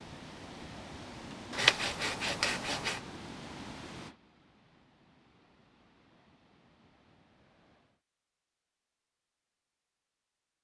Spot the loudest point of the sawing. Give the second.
2 s.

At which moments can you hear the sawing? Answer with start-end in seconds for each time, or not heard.
1.5-3.0.